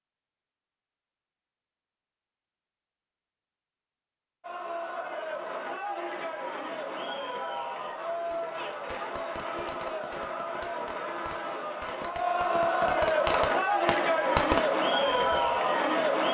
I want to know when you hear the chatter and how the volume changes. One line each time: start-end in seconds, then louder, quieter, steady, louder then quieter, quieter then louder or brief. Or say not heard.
4.4-16.2 louder.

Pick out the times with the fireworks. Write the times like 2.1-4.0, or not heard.
8.3-15.6.